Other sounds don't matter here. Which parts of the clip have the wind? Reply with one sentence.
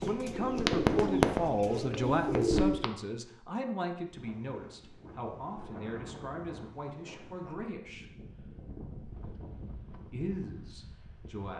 You can hear the wind from 4.0 to 11.5 s.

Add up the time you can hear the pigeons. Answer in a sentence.
You can hear the pigeons for 3 seconds altogether.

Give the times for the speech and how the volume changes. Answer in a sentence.
You can hear the speech from 0.0 to 8.1 s, getting quieter; and briefly from 10.1 to 11.5 s.